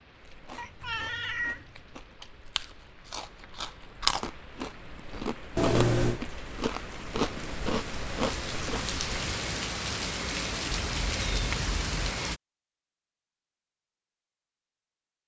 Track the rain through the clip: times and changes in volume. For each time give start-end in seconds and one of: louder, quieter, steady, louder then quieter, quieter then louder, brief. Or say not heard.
0.0-12.4 louder.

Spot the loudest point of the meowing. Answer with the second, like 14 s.
6 s.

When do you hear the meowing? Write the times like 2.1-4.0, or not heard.
0.6-1.9, 5.5-6.2, 10.7-12.0.